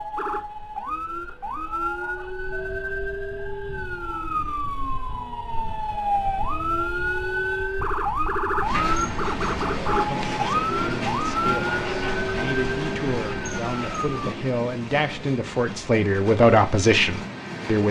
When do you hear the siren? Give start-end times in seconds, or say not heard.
0.0-14.1.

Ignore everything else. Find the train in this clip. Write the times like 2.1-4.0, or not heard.
8.6-17.8.